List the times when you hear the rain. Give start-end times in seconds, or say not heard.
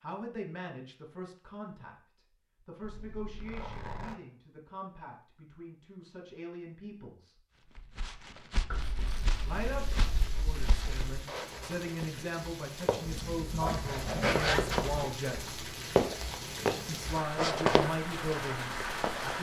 9.6-19.3.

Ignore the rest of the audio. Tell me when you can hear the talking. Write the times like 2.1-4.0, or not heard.
0.0-7.4, 9.4-15.5, 16.9-19.3.